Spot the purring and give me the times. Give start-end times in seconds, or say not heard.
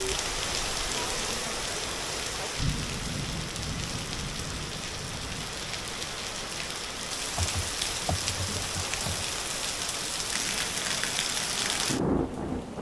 not heard.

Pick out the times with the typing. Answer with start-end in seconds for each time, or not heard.
7.3-9.2.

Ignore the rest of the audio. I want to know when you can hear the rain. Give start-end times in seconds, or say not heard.
0.0-12.7.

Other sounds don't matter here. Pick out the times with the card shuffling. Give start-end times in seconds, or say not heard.
not heard.